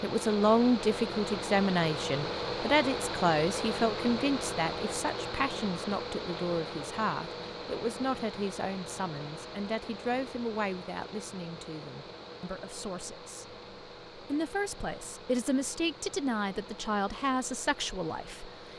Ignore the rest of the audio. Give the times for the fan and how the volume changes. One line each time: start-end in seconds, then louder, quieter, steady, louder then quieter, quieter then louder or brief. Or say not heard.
0.0-18.7 quieter.